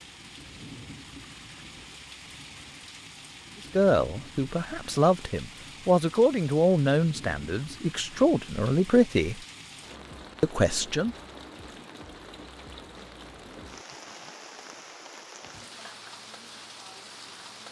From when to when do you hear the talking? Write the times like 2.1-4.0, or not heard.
3.8-9.4, 10.4-11.2.